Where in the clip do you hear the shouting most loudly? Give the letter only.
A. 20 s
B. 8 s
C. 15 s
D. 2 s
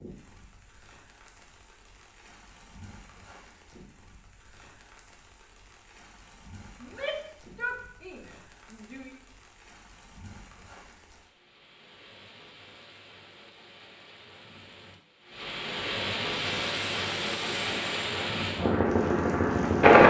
B.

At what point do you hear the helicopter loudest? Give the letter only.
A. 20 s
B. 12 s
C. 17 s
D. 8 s
A.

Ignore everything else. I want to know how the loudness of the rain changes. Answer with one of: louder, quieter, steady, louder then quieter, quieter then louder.
louder.